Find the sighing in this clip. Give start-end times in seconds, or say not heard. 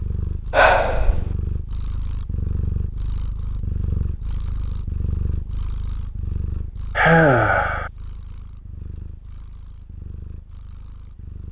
0.5-1.4, 7.0-7.9.